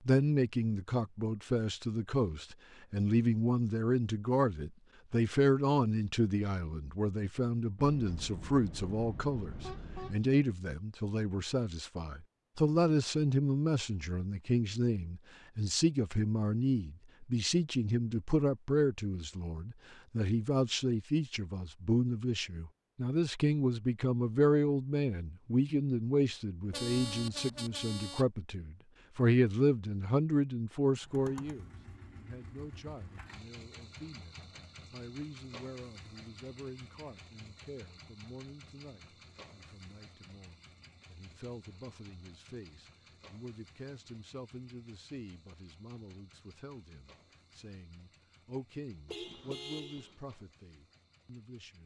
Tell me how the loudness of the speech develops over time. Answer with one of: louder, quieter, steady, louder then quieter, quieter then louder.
quieter.